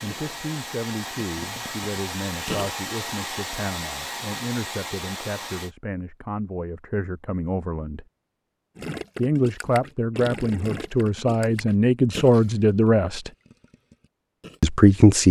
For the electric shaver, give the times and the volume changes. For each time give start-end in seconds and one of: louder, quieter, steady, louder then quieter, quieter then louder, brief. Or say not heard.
not heard.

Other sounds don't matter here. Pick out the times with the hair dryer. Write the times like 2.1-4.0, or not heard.
0.0-5.8.